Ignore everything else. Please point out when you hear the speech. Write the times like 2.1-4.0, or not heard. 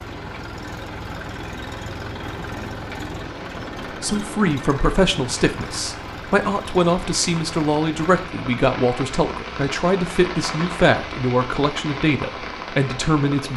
4.0-13.5.